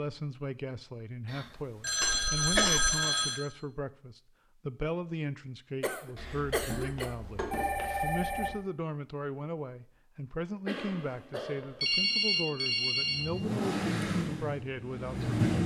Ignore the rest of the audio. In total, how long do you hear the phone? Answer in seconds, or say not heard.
6 s.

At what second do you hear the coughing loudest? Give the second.
3 s.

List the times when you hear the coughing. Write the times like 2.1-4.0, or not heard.
2.0-3.0, 5.8-7.2, 10.7-11.8.